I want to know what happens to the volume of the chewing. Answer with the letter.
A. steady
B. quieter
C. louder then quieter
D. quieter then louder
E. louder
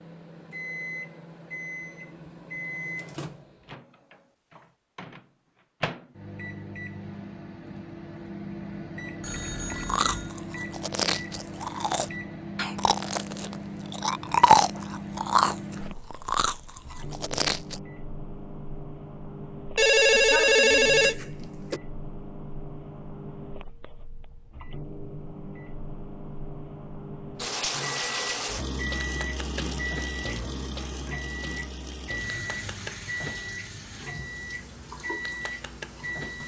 C.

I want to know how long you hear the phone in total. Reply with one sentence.
You can hear the phone for 3 seconds altogether.